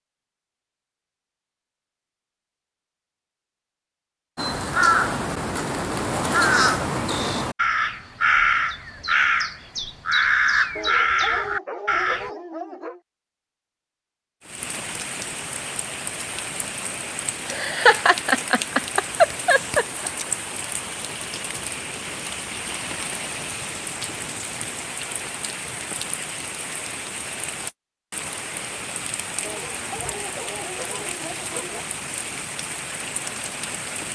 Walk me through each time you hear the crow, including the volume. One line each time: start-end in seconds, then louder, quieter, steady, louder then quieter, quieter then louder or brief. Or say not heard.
4.3-12.3 steady.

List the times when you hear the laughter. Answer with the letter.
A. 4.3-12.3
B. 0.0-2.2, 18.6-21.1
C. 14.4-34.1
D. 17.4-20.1
D.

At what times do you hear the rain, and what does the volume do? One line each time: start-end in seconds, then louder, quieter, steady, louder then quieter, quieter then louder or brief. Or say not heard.
14.4-34.1 steady.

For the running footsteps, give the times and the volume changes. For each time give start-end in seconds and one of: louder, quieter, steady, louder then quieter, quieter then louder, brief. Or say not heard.
not heard.